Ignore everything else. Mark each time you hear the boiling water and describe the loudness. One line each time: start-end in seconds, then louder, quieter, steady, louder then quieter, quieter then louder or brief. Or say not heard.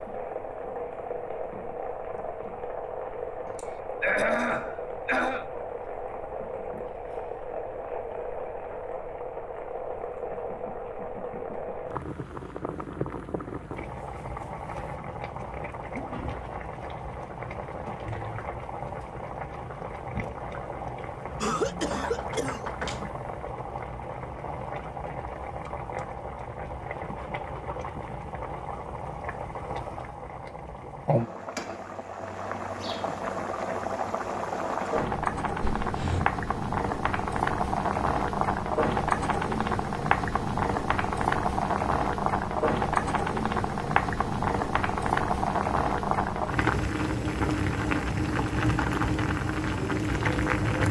0.0-50.8 louder.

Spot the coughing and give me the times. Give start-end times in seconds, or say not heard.
3.5-5.5, 21.4-23.1, 35.6-36.3.